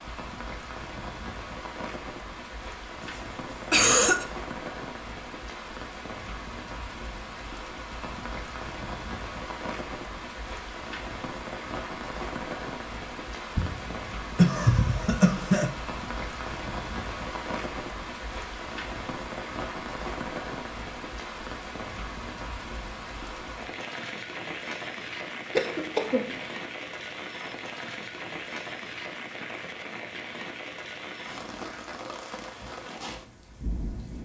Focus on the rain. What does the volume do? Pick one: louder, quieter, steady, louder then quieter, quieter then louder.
steady.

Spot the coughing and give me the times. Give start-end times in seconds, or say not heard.
3.0-4.2, 13.6-15.7, 25.6-26.5.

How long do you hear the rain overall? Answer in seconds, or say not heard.
34 s.